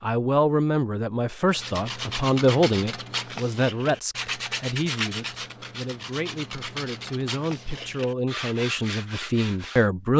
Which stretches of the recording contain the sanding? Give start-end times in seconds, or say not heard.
1.5-9.9.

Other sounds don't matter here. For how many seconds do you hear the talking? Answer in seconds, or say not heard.
10 s.